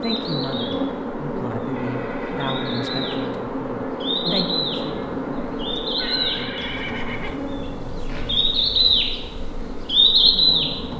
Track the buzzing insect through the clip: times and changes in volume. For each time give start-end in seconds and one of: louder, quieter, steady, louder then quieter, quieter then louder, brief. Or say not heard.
0.0-10.9 quieter.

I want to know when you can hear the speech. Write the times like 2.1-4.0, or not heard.
0.0-8.5, 10.2-10.8.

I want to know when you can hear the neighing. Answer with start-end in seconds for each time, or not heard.
1.6-3.3, 5.9-7.4.